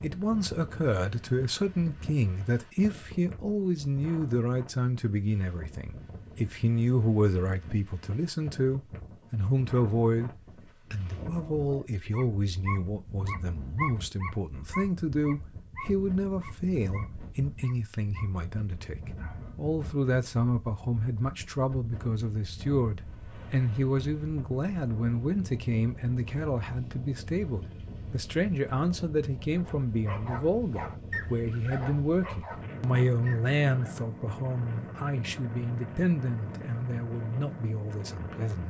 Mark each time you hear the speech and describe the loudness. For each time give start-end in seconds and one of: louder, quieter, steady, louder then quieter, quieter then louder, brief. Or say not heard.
0.0-10.3 steady
10.9-38.6 steady.